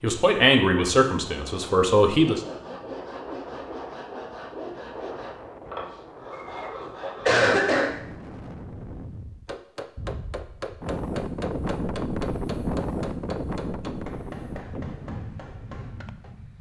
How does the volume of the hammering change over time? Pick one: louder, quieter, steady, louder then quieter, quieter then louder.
quieter.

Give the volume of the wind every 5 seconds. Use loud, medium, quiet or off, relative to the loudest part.
medium, medium, loud, medium.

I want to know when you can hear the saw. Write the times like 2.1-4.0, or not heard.
2.1-7.5.